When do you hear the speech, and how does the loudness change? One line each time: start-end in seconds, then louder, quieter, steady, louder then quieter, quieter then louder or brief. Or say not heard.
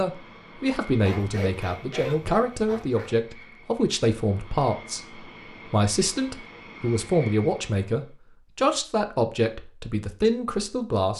0.0-11.1 steady.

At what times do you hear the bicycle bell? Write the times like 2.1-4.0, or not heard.
not heard.